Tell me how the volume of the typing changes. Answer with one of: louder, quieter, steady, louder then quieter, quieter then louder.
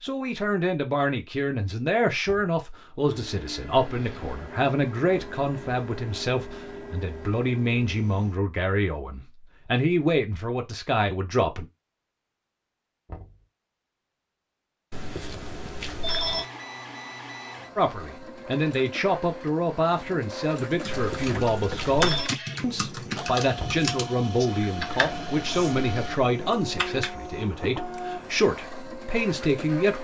quieter.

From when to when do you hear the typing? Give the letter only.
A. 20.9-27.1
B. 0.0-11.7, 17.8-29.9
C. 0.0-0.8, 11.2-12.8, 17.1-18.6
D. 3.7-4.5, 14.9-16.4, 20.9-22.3
A.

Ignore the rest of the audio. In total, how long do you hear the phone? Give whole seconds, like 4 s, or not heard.
4 s.